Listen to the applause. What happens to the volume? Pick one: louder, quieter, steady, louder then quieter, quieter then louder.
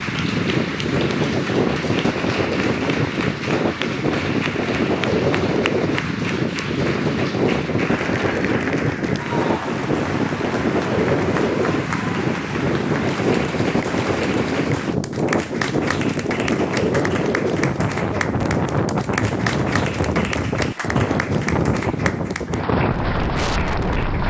steady.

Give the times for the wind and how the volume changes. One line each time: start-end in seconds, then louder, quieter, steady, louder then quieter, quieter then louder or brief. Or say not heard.
0.0-24.2 steady.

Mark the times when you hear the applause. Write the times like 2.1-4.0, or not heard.
0.0-24.2.